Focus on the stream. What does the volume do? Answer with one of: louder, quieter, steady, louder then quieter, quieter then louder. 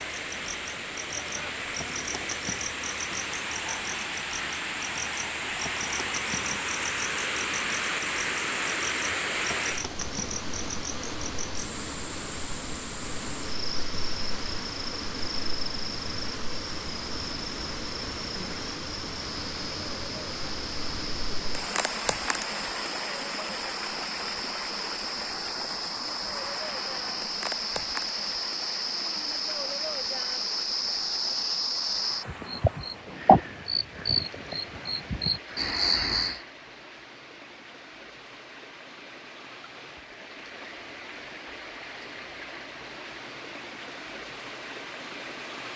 quieter.